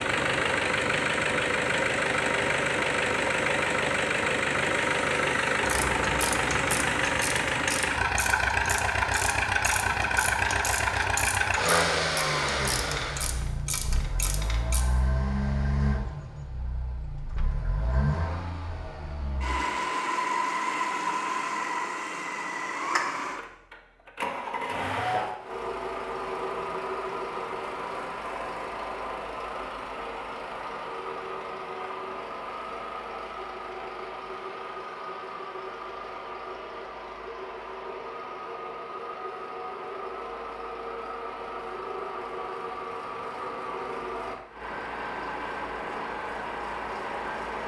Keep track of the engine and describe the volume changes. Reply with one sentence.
The volume of the engine goes down.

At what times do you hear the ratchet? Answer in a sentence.
You can hear the ratchet from 5.6 to 14.8 s.